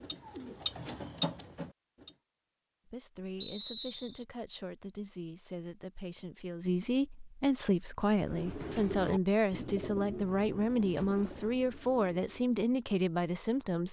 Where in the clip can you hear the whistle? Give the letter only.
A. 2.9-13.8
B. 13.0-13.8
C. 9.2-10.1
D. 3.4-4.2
D.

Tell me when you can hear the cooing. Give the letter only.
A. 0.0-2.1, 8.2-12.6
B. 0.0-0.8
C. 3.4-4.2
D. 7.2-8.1
A.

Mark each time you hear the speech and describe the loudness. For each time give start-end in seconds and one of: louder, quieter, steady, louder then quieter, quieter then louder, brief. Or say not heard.
2.9-13.8 louder.